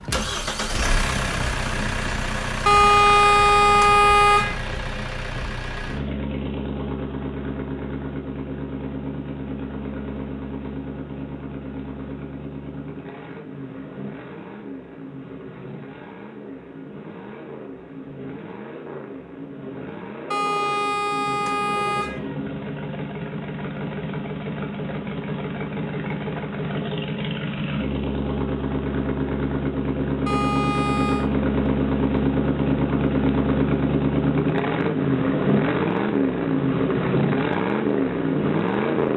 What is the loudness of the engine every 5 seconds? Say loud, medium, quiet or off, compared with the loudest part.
medium, medium, quiet, quiet, medium, medium, loud, loud.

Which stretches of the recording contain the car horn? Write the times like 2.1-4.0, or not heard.
2.6-4.5, 20.3-22.2, 30.2-31.3.